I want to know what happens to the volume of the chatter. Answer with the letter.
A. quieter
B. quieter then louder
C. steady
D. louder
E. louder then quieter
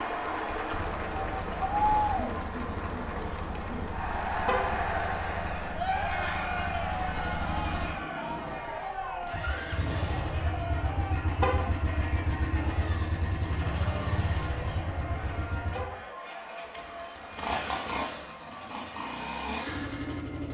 A.